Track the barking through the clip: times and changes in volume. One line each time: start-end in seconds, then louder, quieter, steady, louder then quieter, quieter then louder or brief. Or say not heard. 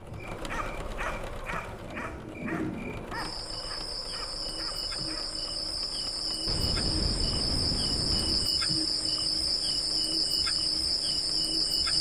0.3-5.4 quieter.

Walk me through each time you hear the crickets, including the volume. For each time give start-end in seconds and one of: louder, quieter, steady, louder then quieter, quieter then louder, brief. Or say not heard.
0.0-11.9 louder.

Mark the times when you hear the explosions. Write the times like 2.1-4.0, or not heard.
6.5-8.5.